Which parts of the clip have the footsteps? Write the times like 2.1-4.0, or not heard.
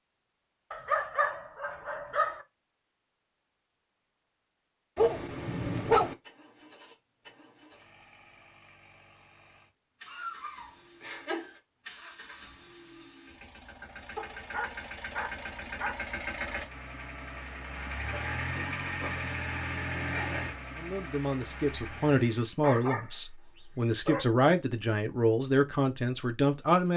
not heard.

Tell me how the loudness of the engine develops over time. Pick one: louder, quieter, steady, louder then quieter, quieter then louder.
louder.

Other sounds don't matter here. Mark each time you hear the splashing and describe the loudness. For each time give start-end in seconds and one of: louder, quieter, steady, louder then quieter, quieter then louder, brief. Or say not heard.
not heard.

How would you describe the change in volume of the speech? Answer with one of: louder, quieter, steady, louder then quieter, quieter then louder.
steady.